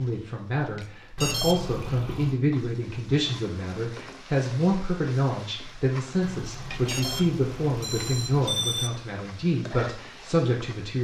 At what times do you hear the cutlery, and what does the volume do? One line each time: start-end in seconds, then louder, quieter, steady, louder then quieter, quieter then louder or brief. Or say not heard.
not heard.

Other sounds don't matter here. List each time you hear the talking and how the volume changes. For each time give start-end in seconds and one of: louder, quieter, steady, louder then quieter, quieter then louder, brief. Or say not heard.
0.0-10.9 steady.